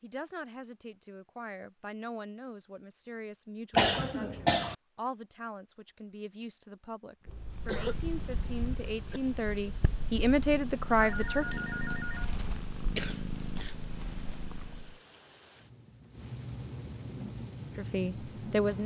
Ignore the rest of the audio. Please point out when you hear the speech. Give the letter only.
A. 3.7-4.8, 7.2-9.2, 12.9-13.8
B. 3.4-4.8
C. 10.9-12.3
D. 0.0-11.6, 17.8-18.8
D.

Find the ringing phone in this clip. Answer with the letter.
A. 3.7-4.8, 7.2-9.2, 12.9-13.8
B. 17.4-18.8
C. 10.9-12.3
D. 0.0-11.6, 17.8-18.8
C.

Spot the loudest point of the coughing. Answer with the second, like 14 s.
4 s.